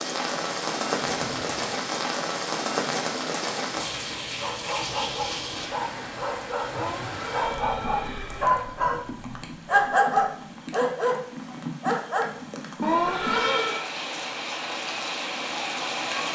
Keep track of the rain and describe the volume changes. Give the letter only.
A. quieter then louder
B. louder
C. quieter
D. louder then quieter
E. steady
A.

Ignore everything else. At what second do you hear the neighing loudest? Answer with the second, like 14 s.
13 s.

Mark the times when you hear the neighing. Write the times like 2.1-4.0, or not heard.
1.1-1.6, 6.7-8.6, 12.8-13.8.